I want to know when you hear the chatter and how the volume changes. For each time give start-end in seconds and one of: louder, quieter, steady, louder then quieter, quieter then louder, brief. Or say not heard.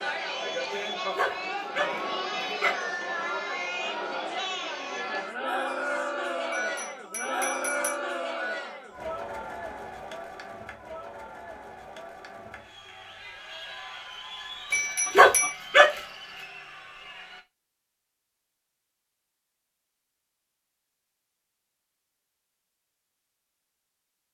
0.0-17.4 quieter.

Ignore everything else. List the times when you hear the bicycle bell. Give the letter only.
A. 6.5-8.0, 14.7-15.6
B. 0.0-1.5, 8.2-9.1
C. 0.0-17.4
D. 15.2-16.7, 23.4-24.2
A.